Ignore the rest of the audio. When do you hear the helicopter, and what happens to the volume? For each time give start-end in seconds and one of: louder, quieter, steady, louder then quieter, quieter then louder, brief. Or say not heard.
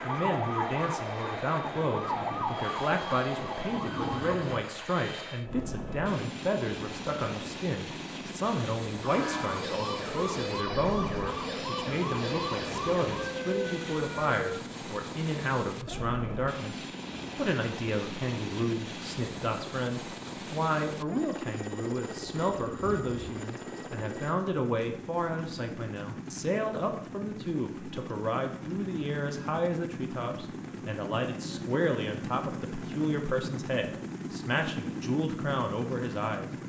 0.0-36.6 steady.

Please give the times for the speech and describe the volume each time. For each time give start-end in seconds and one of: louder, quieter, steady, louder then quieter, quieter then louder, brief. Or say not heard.
0.0-36.5 steady.